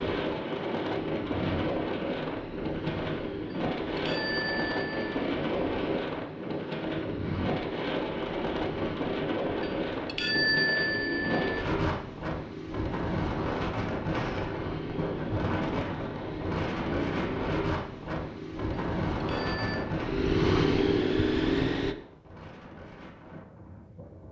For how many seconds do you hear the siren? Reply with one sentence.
The siren can't be heard in this clip.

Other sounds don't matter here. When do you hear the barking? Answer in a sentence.
You can't hear the barking here.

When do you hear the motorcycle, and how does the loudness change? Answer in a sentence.
You can hear the motorcycle from 0.0 to 21.9 s, getting louder.